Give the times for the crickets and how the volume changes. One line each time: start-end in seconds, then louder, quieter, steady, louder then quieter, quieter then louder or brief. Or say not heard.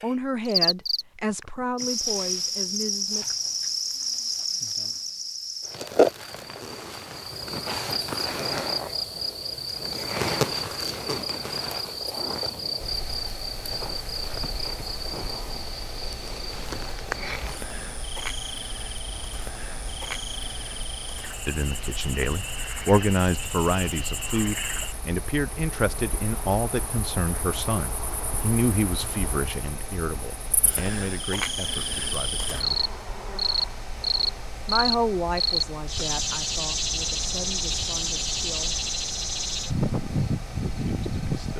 0.0-41.5 quieter then louder.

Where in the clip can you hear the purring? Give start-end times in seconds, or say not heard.
not heard.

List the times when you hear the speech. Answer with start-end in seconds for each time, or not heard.
0.0-3.4, 21.4-32.9, 34.6-38.8, 40.8-41.5.